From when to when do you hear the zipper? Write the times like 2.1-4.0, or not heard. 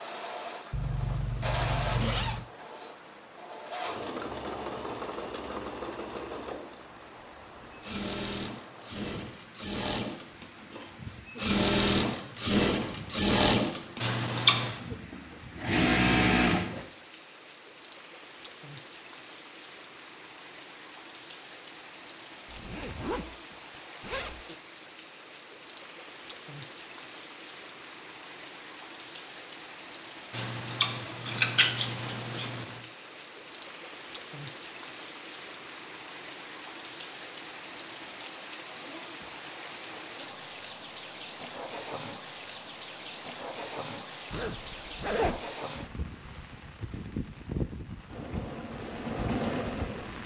0.7-2.5, 22.4-23.4, 24.0-24.4, 44.3-45.4.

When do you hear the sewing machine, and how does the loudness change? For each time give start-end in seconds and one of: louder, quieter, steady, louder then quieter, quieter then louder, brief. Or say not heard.
0.0-16.9 louder
48.0-50.2 brief.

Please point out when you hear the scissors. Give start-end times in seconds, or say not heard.
14.0-14.8, 30.3-32.8.